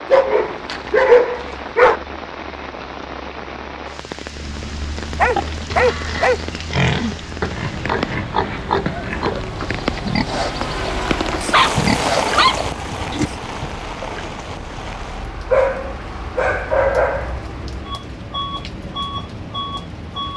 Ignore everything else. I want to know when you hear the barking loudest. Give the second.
1 s.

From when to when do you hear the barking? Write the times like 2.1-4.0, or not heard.
0.1-2.0, 5.2-6.4, 11.1-12.6, 15.5-17.4.